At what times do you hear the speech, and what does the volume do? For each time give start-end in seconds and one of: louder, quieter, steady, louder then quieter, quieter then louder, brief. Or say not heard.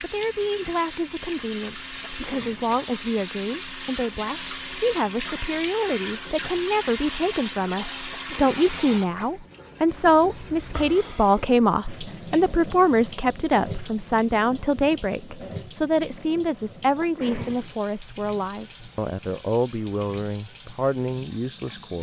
0.0-21.9 louder then quieter.